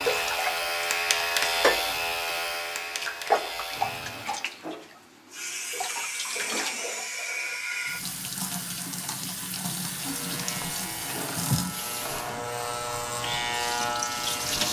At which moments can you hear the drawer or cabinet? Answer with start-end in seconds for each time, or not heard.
3.6-4.2, 10.8-12.6.